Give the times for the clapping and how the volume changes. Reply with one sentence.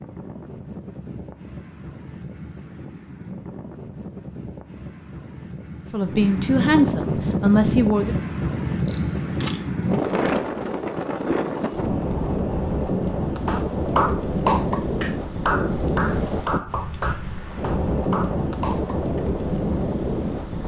You can hear the clapping from 13.4 to 19.2 s, getting quieter.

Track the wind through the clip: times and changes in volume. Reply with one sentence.
The wind can be heard from 0.0 to 20.6 s, getting louder.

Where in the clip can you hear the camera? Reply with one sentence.
You can hear the camera from 8.8 to 9.7 s.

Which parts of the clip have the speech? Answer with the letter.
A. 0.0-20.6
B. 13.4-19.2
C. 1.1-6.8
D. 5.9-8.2
D.